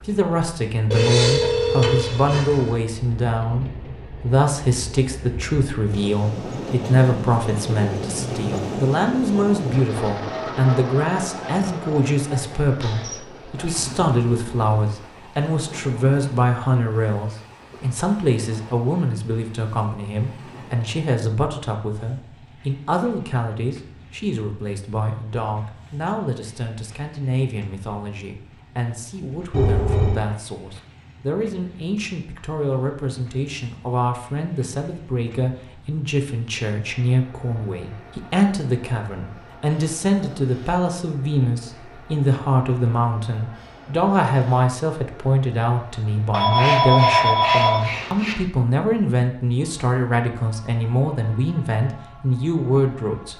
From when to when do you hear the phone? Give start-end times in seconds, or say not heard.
0.9-2.7, 29.5-30.2, 46.3-48.4.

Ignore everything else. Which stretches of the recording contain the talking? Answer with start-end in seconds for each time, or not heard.
0.1-53.3.